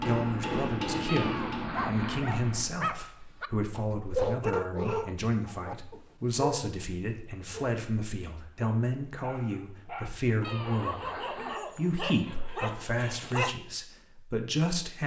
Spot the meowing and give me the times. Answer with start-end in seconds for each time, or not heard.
1.1-2.2, 10.4-11.6.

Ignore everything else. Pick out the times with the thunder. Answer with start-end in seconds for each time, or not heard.
not heard.